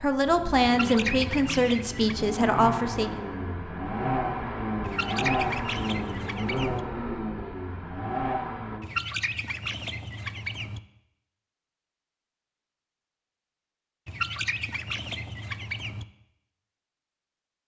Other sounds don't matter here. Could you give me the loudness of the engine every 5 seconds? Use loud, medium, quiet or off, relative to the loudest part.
loud, loud, off, off.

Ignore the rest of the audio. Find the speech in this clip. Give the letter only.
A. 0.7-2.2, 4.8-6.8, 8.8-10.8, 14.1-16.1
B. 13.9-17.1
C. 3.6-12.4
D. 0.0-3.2
D.